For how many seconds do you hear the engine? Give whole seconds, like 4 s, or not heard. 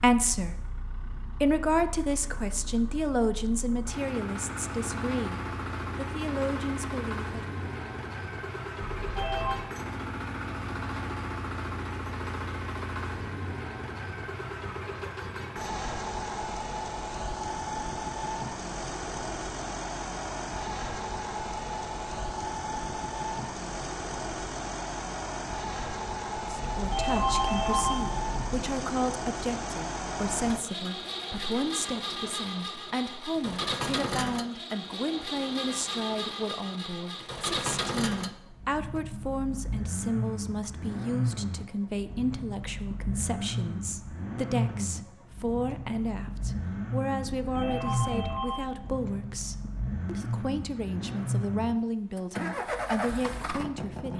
54 s.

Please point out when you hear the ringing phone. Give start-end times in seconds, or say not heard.
8.9-9.6, 26.6-28.6, 47.4-48.7.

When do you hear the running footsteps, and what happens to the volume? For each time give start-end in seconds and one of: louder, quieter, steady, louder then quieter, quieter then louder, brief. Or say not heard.
not heard.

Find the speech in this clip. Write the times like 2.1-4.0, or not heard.
0.0-7.4, 26.5-54.1.